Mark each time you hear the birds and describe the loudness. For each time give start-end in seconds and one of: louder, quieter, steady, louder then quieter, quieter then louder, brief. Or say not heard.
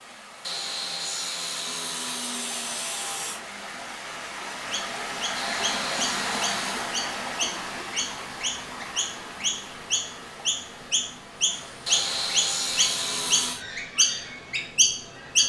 4.6-15.4 louder.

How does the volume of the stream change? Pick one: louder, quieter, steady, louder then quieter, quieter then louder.
louder then quieter.